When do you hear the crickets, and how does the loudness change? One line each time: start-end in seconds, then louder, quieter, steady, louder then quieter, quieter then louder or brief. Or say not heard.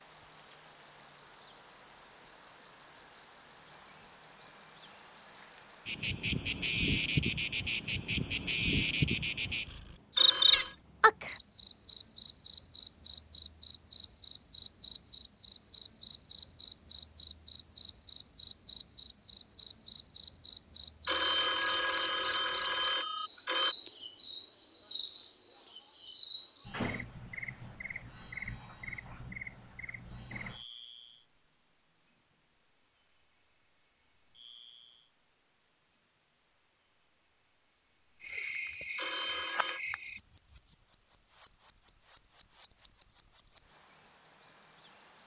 0.1-45.2 quieter.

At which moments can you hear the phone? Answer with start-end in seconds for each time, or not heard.
10.2-10.8, 21.1-23.8, 39.0-39.8.